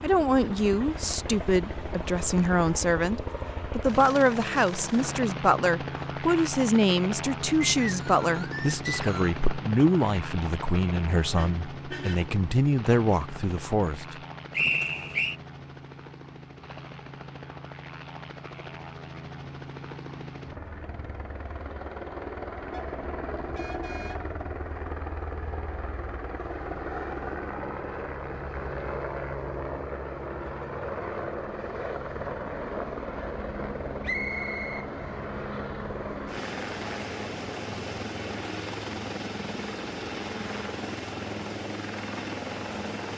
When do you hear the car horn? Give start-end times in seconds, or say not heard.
11.3-12.3, 22.7-24.4.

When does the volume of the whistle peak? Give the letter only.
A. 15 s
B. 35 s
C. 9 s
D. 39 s
A.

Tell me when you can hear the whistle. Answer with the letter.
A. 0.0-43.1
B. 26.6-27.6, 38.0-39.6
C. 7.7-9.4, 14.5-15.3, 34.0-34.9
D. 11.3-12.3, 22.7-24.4
C.